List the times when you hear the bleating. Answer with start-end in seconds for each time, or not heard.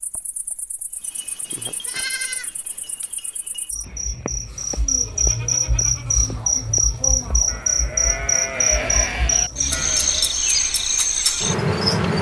1.0-10.3.